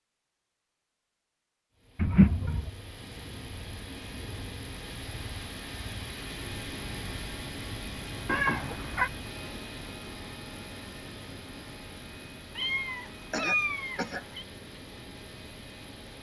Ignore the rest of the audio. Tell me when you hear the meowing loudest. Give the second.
2 s.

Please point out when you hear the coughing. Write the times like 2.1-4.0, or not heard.
13.3-14.2.